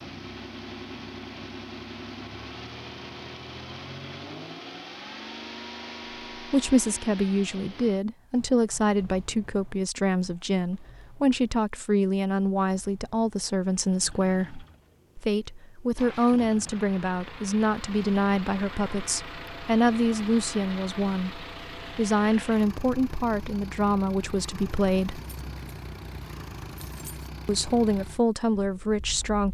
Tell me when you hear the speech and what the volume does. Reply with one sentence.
You can hear the speech from 6.4 to 25.2 s, at a steady volume; and briefly from 27.4 to 29.5 s.